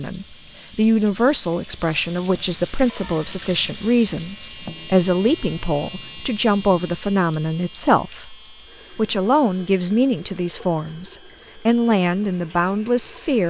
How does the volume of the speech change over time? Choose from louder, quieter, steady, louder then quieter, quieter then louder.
steady.